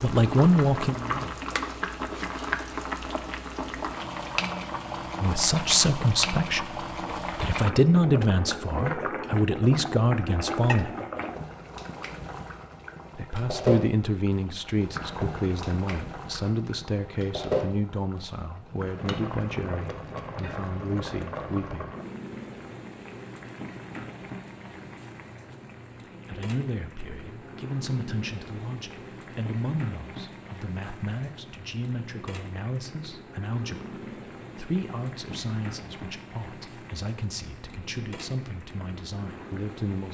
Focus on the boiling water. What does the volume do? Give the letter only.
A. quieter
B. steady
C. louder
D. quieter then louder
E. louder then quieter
A.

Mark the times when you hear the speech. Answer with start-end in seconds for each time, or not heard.
0.0-1.4, 5.2-10.9, 13.2-21.9, 26.2-40.0.